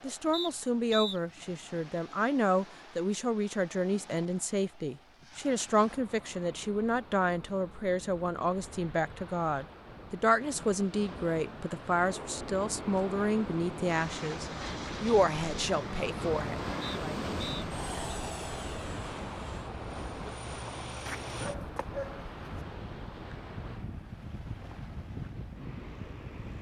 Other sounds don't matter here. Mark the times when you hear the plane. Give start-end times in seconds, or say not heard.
11.9-26.5.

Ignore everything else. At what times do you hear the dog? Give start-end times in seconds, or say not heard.
21.1-22.3.